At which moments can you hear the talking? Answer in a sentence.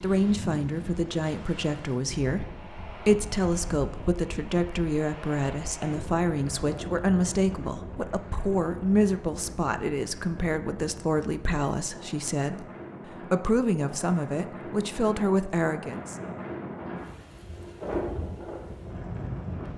You can hear the talking from 0.0 to 16.1 s.